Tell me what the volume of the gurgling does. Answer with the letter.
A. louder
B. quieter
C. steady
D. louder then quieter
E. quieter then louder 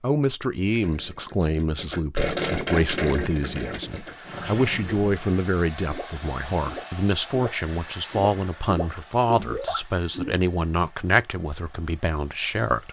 E.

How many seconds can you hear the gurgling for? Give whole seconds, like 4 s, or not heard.
10 s.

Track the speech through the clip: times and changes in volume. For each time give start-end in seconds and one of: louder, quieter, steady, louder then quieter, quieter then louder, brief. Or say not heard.
0.0-12.8 steady.